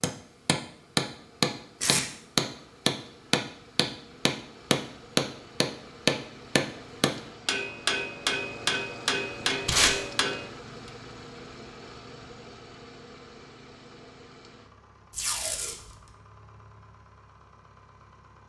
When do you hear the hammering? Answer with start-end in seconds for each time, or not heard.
0.0-10.5.